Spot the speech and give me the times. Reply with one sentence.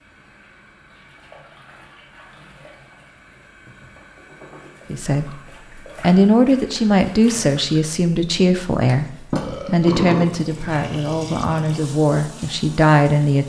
The speech can be heard from 4.9 to 13.4 s.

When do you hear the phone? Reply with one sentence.
You can't hear the phone here.